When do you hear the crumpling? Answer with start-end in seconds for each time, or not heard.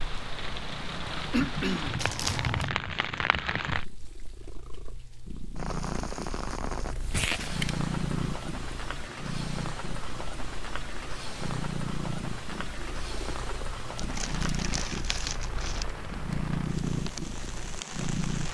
1.9-2.7, 6.9-7.7, 13.9-15.8.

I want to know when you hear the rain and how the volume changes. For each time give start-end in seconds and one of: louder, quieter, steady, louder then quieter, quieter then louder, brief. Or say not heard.
0.0-18.4 quieter.